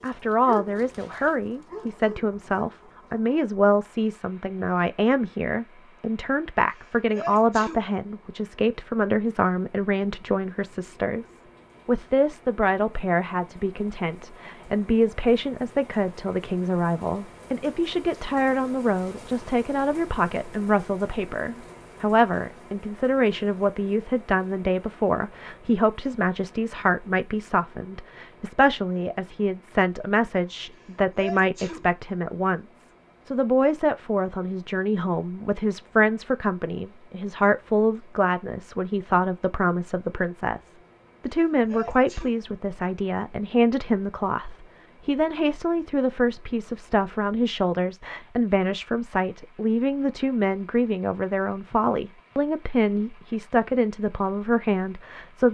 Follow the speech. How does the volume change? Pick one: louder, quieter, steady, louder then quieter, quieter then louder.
steady.